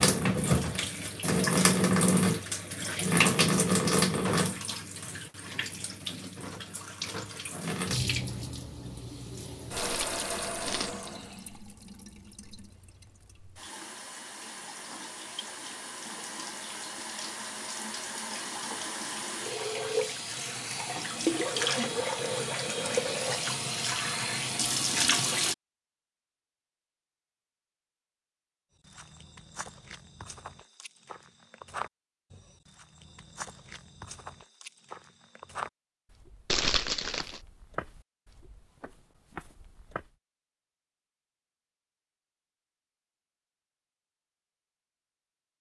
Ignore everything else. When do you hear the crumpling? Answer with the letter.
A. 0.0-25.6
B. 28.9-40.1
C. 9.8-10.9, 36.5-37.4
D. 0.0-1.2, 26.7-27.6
C.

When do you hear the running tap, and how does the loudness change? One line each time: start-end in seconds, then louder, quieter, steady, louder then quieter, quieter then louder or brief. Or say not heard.
0.0-25.6 quieter then louder.